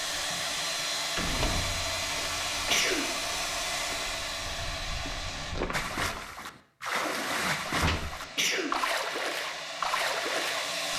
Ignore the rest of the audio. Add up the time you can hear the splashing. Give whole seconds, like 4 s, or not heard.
5 s.